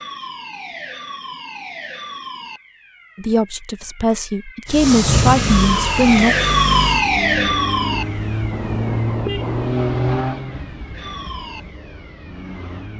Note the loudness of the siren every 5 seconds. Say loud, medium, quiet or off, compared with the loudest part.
quiet, loud, quiet.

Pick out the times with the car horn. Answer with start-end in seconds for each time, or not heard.
8.5-9.8.